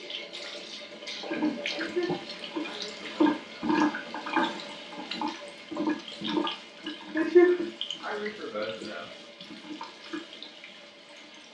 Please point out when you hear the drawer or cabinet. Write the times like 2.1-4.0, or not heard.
not heard.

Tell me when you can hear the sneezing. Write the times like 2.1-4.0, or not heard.
1.8-3.4, 7.2-9.1.